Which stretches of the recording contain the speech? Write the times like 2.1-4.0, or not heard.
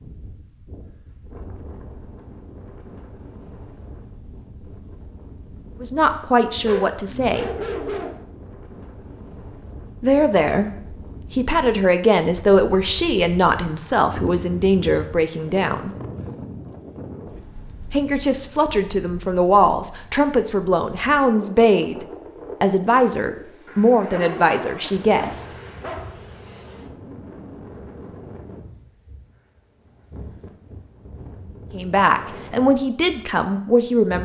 5.8-7.5, 10.0-10.7, 11.3-15.9, 17.9-25.4, 31.7-34.2.